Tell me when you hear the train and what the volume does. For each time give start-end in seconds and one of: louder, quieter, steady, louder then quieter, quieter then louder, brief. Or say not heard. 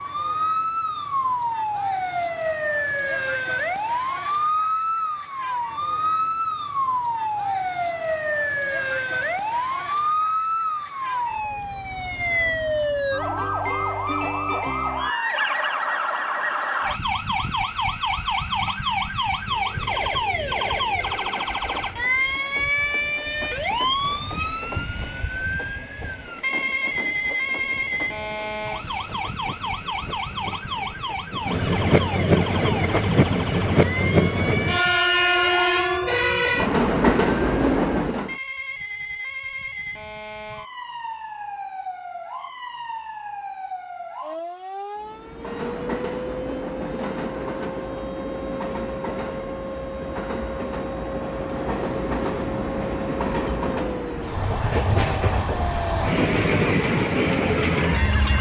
19.3-38.4 louder
45.0-58.3 louder.